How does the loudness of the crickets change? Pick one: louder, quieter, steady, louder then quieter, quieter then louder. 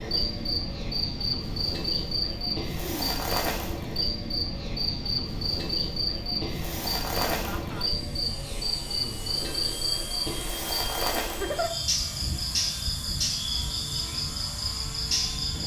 steady.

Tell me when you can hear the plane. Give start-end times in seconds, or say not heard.
0.0-15.6.